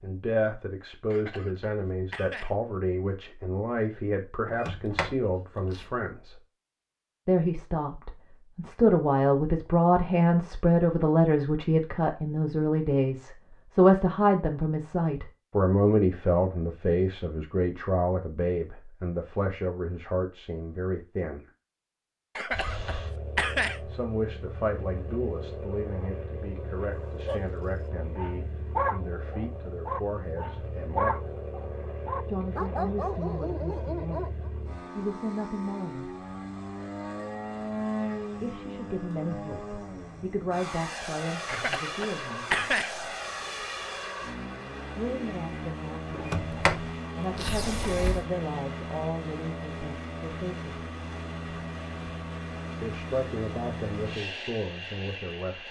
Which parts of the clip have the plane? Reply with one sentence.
You can hear the plane from 22.5 to 55.6 s.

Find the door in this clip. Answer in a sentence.
You can hear the door from 4.5 to 5.8 s and from 46.1 to 48.2 s.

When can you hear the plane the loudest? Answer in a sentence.
The volume of the plane peaks at 38 seconds.